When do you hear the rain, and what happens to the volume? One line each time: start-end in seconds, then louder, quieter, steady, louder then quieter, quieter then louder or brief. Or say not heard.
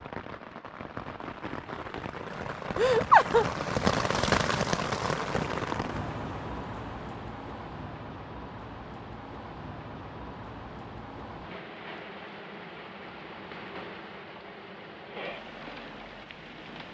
0.0-16.8 louder then quieter.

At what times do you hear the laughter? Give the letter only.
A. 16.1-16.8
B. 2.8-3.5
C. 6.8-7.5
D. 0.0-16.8
B.